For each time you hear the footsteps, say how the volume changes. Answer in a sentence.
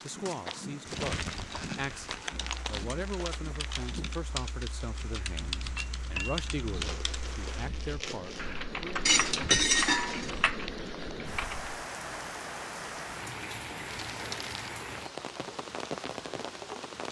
The footsteps can be heard from 0.0 to 4.3 s, at a steady volume.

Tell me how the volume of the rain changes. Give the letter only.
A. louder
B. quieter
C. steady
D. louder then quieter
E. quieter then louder
A.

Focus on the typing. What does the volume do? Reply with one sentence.
The volume of the typing goes up.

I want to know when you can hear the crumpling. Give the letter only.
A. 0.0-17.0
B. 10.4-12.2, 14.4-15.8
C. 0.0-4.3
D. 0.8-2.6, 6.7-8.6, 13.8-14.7
D.